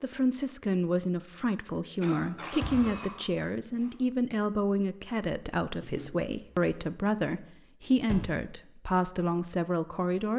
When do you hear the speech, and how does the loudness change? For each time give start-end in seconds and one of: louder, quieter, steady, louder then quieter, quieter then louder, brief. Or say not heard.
0.0-10.3 steady.